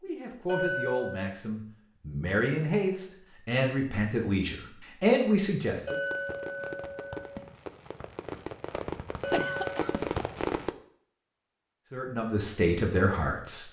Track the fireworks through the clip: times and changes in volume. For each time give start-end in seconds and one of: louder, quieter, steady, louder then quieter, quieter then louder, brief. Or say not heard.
5.8-10.7 louder.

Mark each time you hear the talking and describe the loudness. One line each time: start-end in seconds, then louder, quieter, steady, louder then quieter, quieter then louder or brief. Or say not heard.
0.0-6.0 louder
11.9-13.6 brief.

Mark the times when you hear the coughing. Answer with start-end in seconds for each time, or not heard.
9.3-9.9.